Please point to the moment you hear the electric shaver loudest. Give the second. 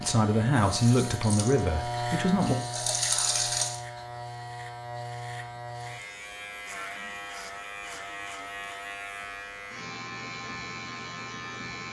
2 s.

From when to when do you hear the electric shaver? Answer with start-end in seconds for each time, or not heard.
0.0-11.8.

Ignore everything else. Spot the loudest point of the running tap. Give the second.
3 s.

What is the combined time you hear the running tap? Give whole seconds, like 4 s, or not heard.
4 s.